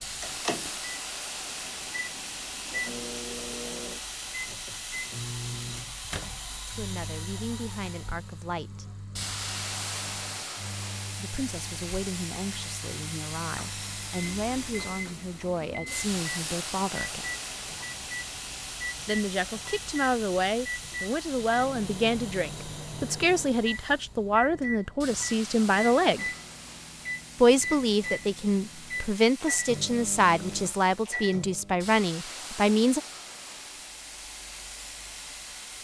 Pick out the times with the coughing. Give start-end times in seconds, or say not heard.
not heard.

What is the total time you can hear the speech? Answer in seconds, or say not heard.
21 s.